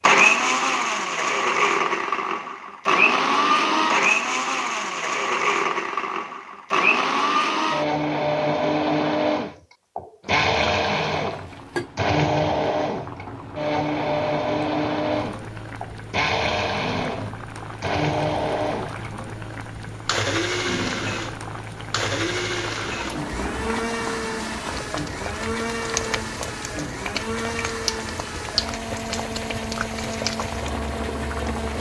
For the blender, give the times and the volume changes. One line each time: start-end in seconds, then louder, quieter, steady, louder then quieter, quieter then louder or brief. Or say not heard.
0.0-31.7 quieter.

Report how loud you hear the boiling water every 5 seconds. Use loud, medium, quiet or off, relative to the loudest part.
off, off, medium, medium, loud, loud, loud.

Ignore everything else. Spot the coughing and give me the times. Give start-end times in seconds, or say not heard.
not heard.